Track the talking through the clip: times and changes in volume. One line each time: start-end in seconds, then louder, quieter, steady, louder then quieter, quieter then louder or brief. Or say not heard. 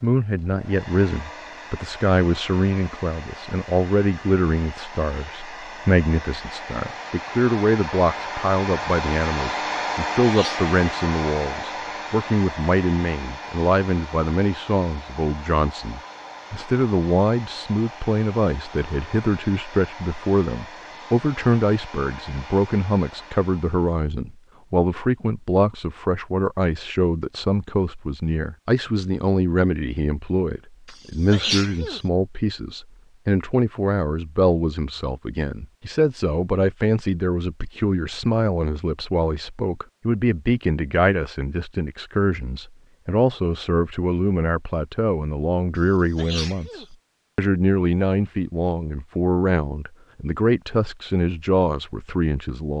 0.0-52.7 steady.